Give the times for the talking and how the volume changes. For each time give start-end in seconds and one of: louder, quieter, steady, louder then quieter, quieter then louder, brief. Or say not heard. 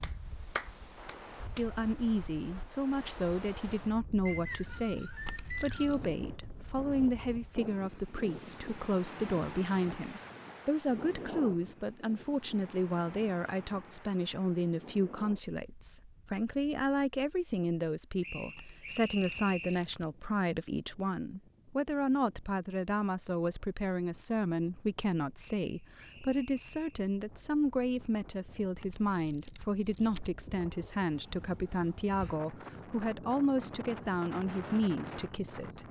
1.6-35.8 steady.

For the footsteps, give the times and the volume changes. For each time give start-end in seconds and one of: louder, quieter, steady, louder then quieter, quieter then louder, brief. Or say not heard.
not heard.